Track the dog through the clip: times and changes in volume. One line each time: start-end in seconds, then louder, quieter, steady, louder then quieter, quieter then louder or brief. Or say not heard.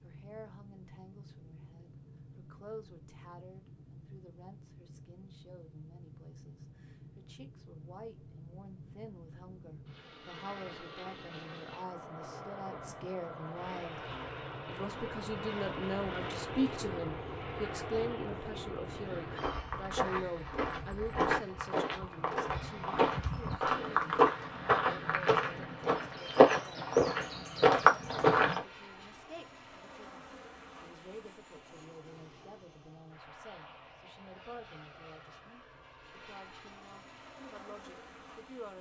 not heard.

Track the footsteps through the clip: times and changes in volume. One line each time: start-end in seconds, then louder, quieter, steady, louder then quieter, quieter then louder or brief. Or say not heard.
19.1-28.6 louder.